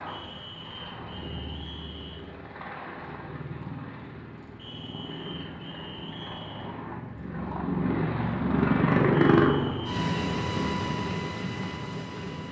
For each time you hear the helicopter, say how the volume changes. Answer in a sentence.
You can hear the helicopter from 0.0 to 12.4 s, getting louder then quieter.